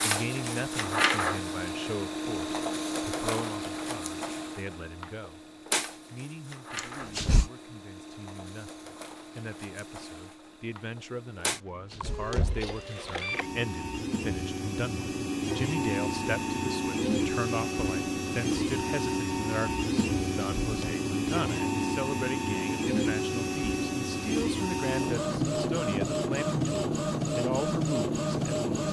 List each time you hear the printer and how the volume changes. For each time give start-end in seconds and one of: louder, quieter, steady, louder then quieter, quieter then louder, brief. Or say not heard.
0.0-28.8 quieter then louder.